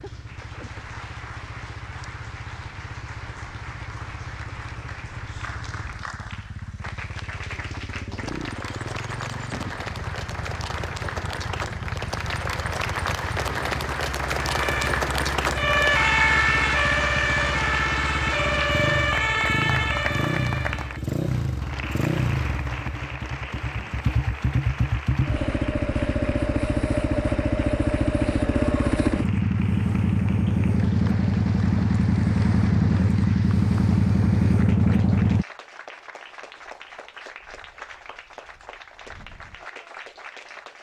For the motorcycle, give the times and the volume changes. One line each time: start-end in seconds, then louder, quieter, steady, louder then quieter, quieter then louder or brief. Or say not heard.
0.0-35.5 louder.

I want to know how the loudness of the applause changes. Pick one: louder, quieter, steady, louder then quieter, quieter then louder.
louder then quieter.